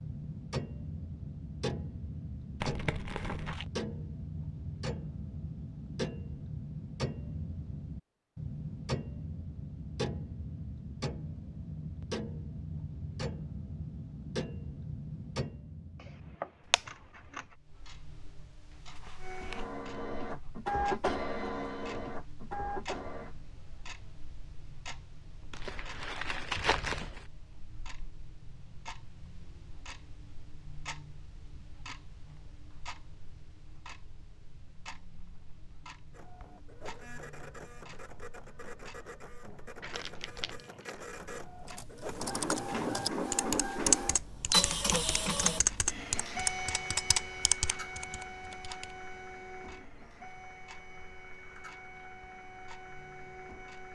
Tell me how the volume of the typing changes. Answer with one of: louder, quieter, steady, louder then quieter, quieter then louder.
louder then quieter.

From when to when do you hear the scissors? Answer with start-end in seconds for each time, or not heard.
15.9-17.6.